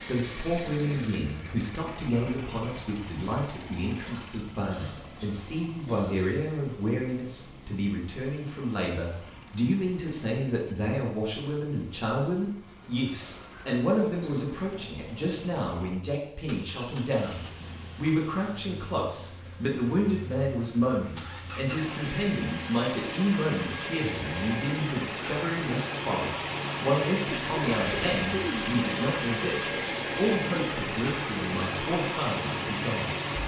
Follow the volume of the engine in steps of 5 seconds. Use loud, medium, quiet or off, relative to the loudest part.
medium, quiet, quiet, quiet, medium, loud, loud.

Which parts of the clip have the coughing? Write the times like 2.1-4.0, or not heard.
4.0-6.2, 12.7-14.4, 27.2-28.8.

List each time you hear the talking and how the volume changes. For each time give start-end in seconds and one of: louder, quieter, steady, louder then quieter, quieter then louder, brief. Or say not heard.
0.0-33.1 steady.